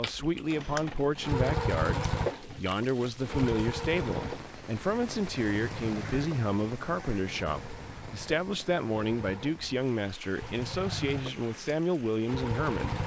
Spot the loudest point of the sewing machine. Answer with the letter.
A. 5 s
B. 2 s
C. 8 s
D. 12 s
B.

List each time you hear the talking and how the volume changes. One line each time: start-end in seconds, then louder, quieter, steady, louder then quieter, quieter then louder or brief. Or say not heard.
0.0-13.0 steady.